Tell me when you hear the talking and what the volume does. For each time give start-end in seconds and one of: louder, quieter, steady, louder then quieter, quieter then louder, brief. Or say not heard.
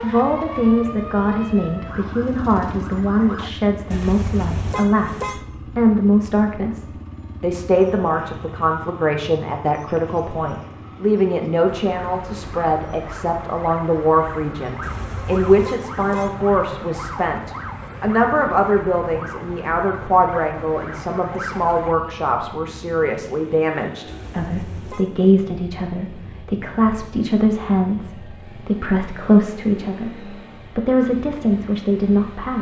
0.0-32.5 steady.